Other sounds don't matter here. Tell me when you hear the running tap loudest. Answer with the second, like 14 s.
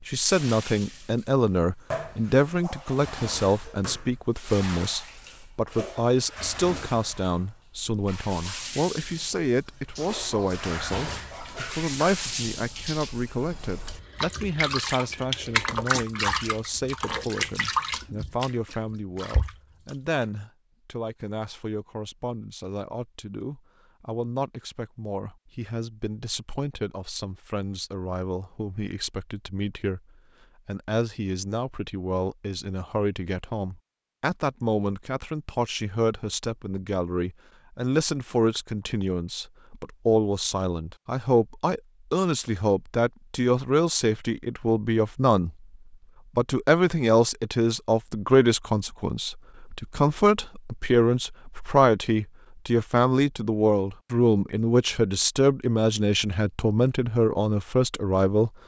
16 s.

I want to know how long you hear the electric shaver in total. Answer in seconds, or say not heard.
not heard.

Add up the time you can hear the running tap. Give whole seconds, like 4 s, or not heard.
20 s.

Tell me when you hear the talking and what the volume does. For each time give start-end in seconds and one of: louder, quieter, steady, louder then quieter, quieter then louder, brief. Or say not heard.
0.1-30.0 quieter
30.6-45.5 louder
46.4-58.5 steady.